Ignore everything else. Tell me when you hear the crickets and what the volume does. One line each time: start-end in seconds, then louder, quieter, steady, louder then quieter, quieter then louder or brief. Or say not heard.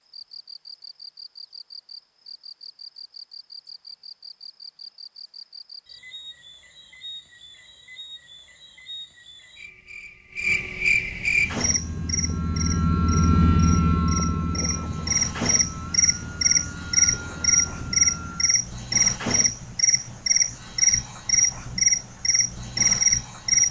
0.1-23.6 louder.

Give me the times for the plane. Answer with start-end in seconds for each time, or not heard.
11.2-18.6.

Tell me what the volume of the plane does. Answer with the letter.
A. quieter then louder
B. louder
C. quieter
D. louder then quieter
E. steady
D.